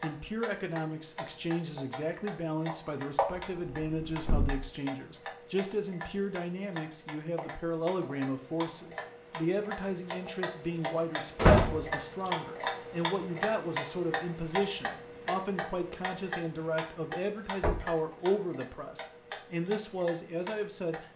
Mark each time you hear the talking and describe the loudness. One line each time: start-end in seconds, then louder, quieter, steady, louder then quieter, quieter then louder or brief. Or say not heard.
0.0-21.1 steady.